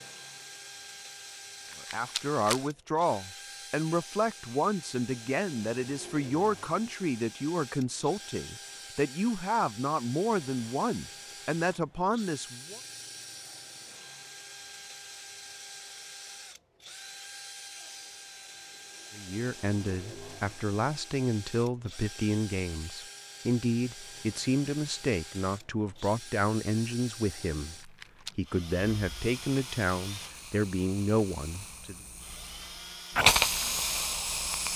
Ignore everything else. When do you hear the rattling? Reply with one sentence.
The rattling can be heard from 1.6 to 2.6 s and from 27.8 to 28.4 s.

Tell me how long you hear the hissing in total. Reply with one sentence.
You can hear the hissing for 6 seconds altogether.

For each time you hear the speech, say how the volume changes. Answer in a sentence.
The speech can be heard from 1.9 to 12.8 s, at a steady volume; and from 19.1 to 31.9 s, at a steady volume.